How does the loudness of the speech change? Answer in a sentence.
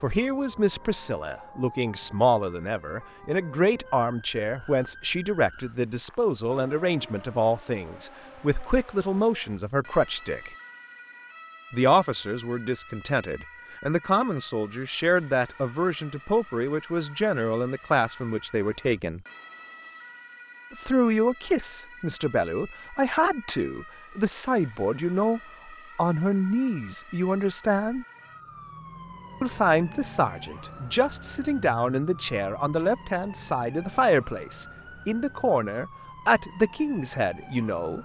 The loudness of the speech stays about the same.